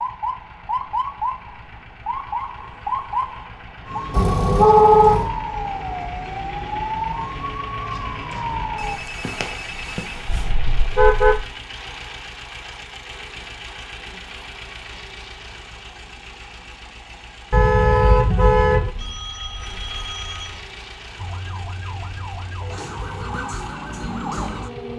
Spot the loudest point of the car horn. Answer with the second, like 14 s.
5 s.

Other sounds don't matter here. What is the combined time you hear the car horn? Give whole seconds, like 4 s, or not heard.
4 s.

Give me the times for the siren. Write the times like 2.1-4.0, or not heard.
0.0-9.0, 21.1-24.9.